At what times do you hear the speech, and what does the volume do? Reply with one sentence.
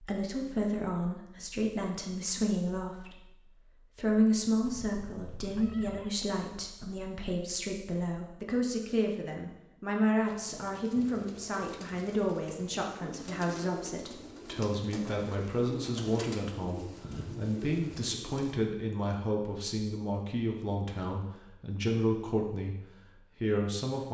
The speech can be heard from 0.0 to 22.8 s, at a steady volume; and briefly from 23.4 to 24.0 s.